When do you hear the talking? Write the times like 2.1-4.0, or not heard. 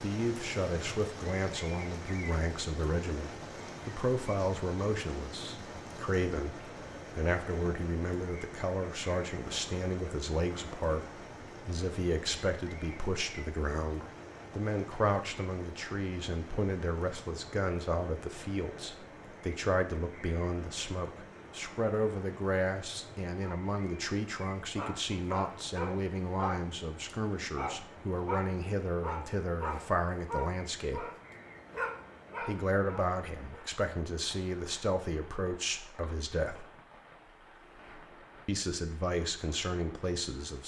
0.0-31.1, 32.4-36.6, 38.5-40.6.